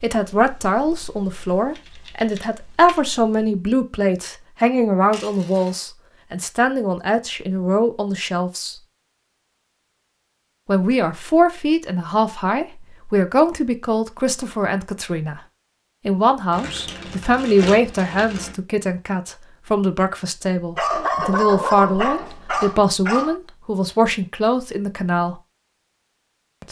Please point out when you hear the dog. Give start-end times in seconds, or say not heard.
20.8-23.4.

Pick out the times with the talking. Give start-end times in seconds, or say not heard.
0.0-8.8, 10.7-15.4, 16.1-25.4.